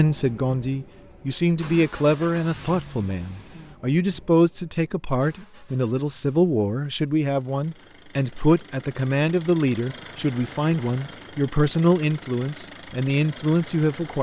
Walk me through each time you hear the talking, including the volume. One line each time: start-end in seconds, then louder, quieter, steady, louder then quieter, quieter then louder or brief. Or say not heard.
0.0-14.1 steady.